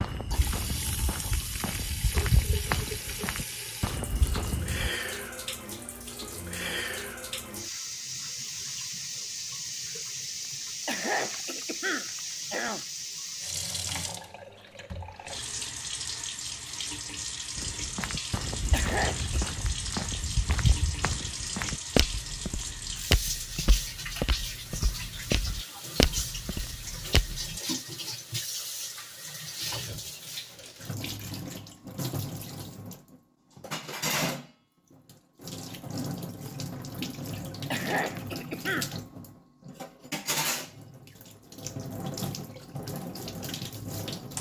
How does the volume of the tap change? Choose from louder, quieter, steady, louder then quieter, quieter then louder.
steady.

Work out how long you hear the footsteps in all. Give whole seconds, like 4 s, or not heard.
15 s.